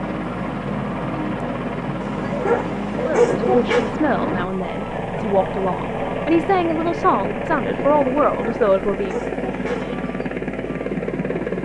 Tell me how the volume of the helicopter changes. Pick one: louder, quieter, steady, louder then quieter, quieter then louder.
steady.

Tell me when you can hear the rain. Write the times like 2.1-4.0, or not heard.
not heard.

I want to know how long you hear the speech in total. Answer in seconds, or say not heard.
6 s.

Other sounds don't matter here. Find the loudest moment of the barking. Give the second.
3 s.